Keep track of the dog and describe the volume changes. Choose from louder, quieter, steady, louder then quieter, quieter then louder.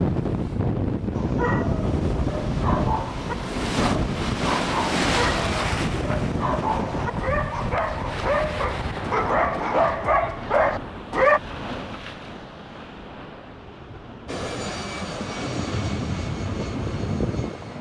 louder.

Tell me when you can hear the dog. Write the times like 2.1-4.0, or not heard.
1.1-11.4.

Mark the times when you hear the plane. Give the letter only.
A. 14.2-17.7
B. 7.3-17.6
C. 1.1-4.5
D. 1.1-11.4
A.